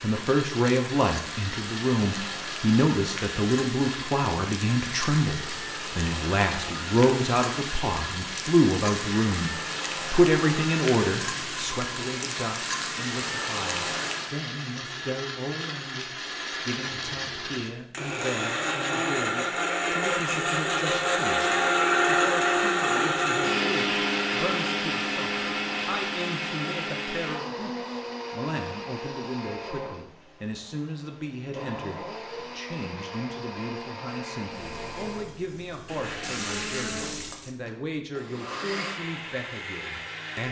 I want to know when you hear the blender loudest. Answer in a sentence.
The volume of the blender peaks at 22 seconds.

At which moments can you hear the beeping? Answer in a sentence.
You can't hear the beeping here.